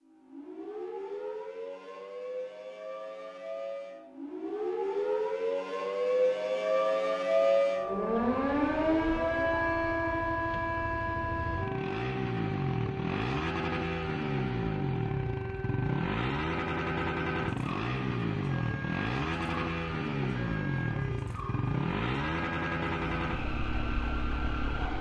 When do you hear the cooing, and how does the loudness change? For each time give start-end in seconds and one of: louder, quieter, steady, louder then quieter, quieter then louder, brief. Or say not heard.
not heard.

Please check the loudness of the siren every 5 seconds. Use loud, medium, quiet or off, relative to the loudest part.
medium, loud, medium, quiet, quiet.